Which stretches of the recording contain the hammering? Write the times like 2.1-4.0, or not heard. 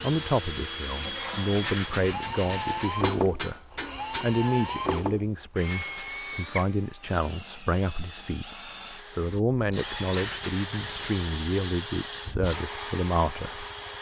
3.0-4.3.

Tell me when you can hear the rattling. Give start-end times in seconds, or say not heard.
1.5-3.0, 5.5-6.3, 10.0-11.2.